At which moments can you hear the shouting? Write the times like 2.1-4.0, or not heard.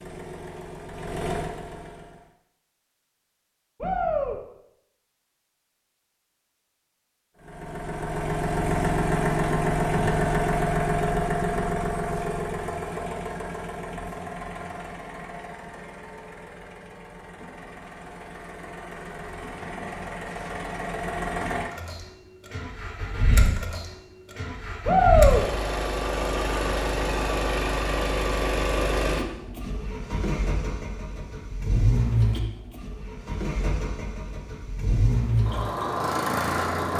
3.8-4.4, 24.9-25.4.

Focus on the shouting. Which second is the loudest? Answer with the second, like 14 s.
25 s.